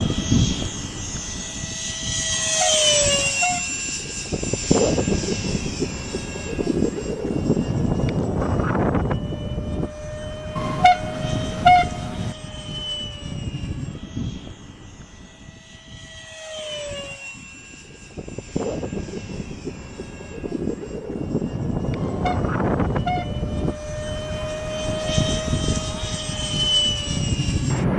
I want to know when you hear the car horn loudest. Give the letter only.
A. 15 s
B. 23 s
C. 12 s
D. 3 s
C.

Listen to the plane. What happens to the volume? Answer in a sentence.
The loudness of the plane goes down, then up.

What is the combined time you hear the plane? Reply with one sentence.
You can hear the plane for 28 seconds altogether.